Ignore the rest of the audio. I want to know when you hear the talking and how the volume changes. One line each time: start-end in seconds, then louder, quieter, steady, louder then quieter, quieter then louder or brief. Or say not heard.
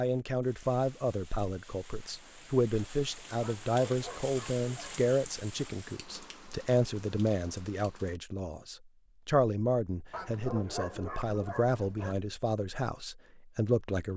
0.0-14.1 steady.